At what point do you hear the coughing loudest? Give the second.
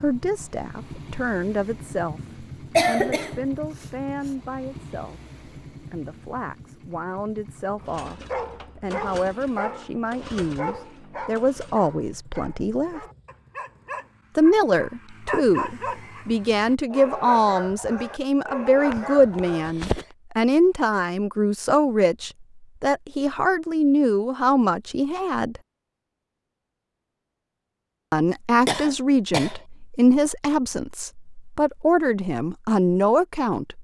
3 s.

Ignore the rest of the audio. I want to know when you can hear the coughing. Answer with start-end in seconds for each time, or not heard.
2.7-4.3, 18.9-20.1, 28.6-29.6.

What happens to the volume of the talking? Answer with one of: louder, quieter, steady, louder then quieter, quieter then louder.
louder.